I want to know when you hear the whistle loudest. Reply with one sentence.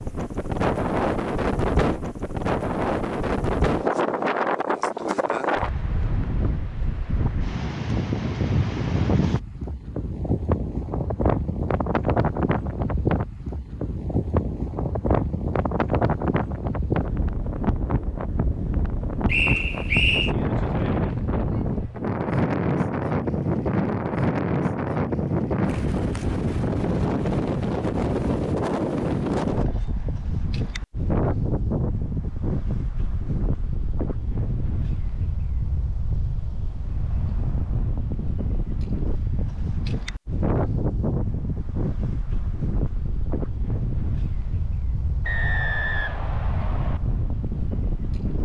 The volume of the whistle peaks at 20 seconds.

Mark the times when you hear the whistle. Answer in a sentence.
The whistle can be heard from 19.2 to 20.4 s and from 45.2 to 47.0 s.